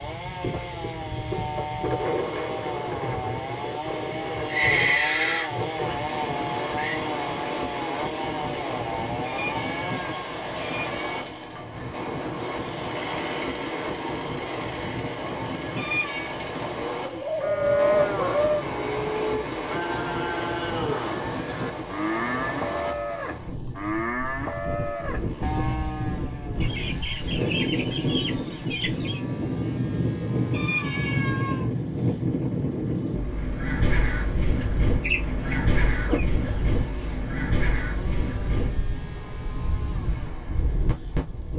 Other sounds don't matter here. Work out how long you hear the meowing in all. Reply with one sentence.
The meowing can be heard for 4 seconds in total.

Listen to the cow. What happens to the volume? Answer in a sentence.
The loudness of the cow stays about the same.